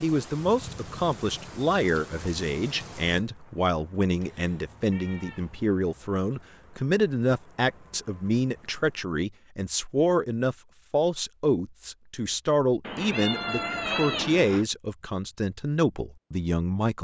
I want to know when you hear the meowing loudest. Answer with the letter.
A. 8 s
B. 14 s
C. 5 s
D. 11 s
B.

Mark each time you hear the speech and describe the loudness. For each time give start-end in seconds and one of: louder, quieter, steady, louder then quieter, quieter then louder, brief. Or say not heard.
0.0-16.9 steady.